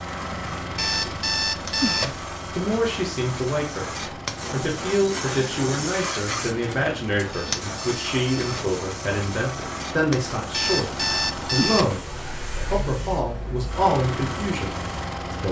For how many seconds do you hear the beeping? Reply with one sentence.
You can hear the beeping for 4 seconds altogether.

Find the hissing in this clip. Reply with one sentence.
The hissing can be heard from 0.0 to 15.4 s.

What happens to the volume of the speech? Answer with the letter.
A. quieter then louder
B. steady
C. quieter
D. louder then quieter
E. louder
B.